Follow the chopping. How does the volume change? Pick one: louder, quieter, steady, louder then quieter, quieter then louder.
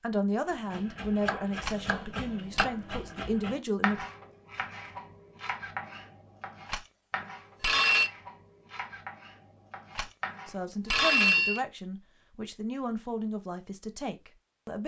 quieter.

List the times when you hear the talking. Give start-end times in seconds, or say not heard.
0.0-4.0, 10.4-14.8.